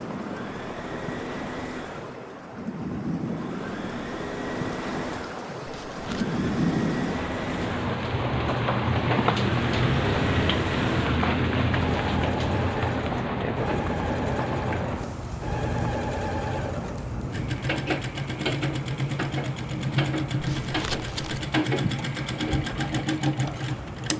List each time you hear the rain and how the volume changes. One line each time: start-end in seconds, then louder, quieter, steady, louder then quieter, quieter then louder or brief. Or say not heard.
0.0-24.1 louder then quieter.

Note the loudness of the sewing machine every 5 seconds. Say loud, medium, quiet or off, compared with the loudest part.
medium, medium, loud, loud, loud.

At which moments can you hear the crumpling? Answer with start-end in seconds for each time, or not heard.
5.7-6.2, 20.4-21.4.